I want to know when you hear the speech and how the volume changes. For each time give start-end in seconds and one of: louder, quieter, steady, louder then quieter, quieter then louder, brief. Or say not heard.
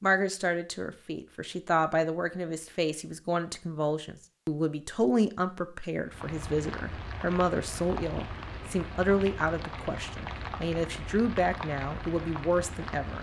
0.0-13.1 steady.